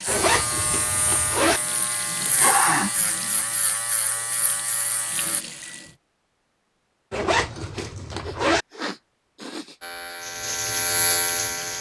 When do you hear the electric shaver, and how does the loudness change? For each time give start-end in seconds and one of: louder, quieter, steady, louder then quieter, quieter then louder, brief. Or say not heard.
0.0-5.5 steady
9.8-11.7 brief.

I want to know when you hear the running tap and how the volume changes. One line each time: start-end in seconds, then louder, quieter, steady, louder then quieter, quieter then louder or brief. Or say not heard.
0.0-6.0 quieter then louder
10.2-11.7 brief.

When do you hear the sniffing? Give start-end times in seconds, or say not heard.
2.2-3.0, 7.8-9.8.